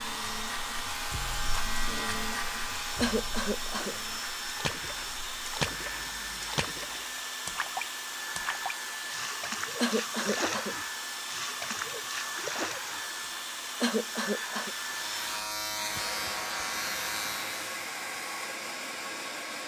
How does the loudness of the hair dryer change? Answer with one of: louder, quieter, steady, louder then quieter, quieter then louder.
steady.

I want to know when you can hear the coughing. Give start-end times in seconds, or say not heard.
3.0-4.0, 9.8-10.8, 13.8-14.8.